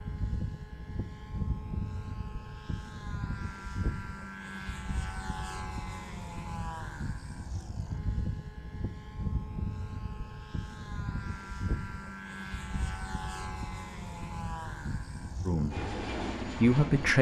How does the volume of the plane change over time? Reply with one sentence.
The volume of the plane stays about the same.